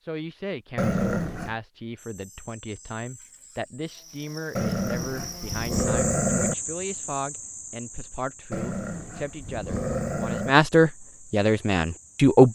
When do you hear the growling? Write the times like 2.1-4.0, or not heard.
0.8-1.6, 4.5-6.5, 8.5-10.6.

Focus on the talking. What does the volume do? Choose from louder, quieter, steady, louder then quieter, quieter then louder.
louder.